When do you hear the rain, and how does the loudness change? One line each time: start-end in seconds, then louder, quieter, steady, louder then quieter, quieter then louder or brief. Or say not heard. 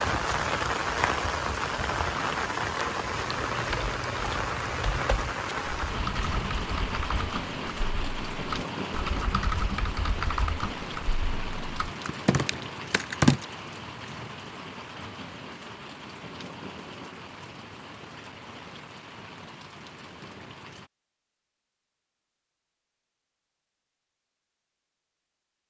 0.0-20.9 quieter.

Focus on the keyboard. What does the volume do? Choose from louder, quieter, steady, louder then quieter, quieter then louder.
louder.